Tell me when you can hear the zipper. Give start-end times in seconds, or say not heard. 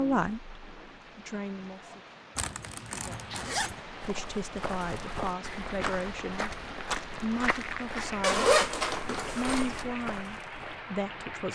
2.4-3.8, 8.2-9.8.